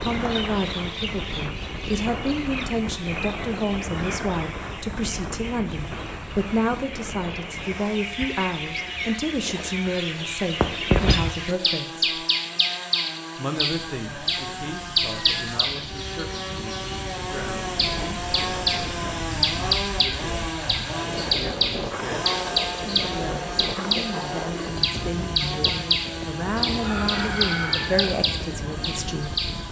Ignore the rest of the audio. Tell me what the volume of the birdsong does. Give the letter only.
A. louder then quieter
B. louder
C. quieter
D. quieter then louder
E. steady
B.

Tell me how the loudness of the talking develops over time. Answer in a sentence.
The volume of the talking goes down, then up.